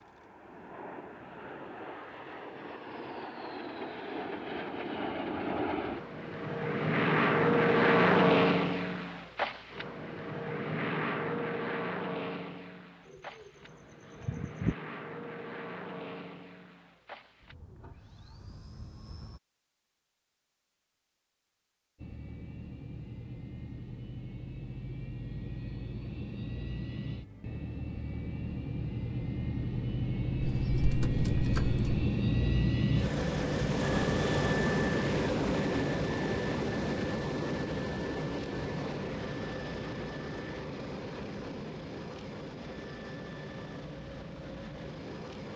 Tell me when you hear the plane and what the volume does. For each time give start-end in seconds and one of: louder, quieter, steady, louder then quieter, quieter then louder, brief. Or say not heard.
0.0-19.4 louder then quieter
21.9-45.5 louder then quieter.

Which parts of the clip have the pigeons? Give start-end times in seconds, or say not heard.
13.1-13.5, 14.2-14.8, 30.4-32.0.